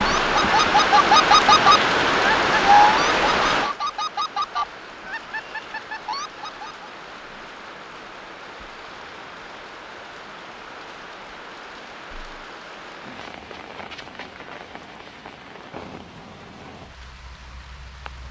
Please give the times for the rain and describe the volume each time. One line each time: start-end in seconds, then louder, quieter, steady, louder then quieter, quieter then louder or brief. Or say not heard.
0.0-18.2 quieter.